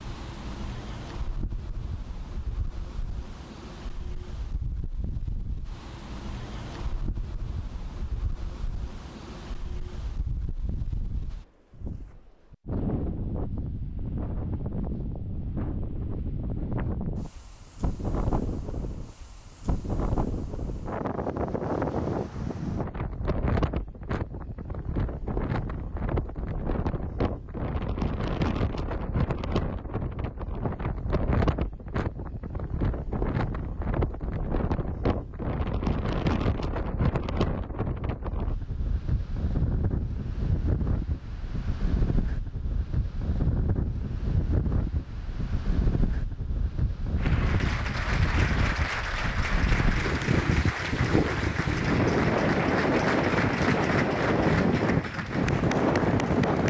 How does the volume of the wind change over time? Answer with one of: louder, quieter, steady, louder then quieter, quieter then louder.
louder.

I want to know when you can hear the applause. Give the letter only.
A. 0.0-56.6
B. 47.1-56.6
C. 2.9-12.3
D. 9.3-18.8
B.